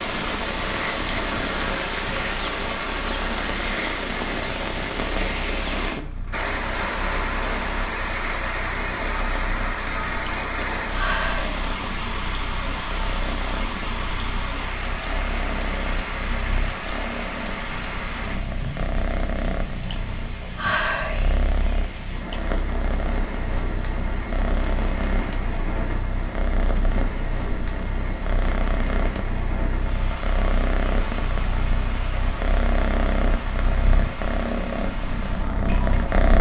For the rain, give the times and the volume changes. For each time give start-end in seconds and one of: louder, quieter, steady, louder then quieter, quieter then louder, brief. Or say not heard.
0.0-36.3 quieter.